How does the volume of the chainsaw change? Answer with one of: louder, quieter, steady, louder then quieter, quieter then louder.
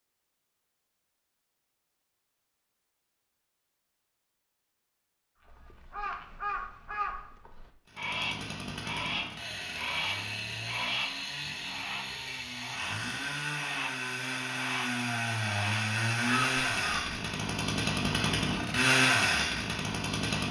louder.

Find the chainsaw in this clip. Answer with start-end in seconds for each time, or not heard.
7.8-20.4.